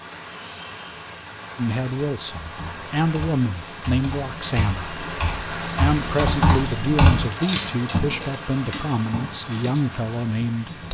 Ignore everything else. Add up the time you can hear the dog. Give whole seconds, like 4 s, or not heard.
not heard.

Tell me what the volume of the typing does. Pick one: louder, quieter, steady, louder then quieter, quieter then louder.
louder then quieter.